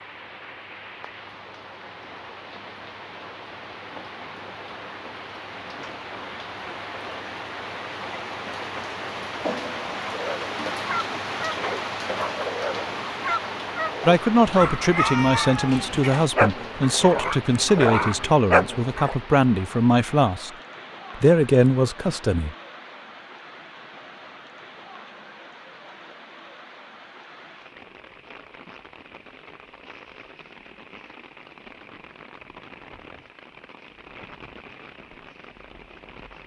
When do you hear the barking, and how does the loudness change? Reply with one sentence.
You can hear the barking from 10.1 to 19.1 s, getting louder.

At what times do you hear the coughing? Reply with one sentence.
The coughing can't be heard in this clip.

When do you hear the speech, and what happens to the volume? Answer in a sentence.
You can hear the speech from 14.1 to 20.5 s, at a steady volume; and briefly from 21.1 to 22.6 s.